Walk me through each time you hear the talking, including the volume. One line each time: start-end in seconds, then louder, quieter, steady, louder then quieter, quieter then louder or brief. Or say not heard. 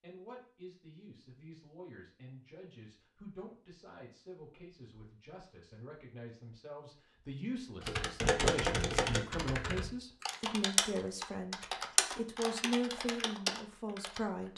0.0-14.5 louder.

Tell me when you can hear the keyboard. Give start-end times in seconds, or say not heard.
7.8-14.2.